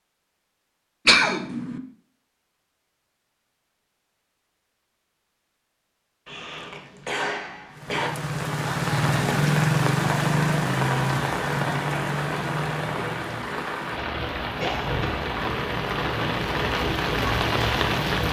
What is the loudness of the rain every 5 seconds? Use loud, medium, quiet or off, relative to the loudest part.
off, loud, loud, loud.